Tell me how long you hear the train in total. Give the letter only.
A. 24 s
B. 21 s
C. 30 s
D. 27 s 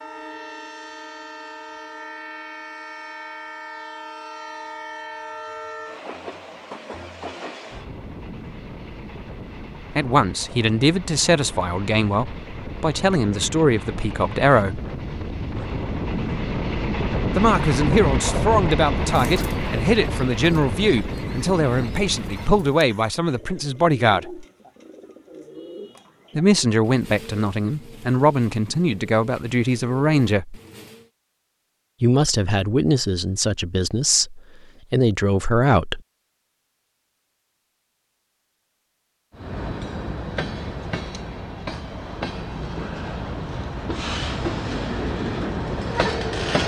C.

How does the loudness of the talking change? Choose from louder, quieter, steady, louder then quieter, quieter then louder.
steady.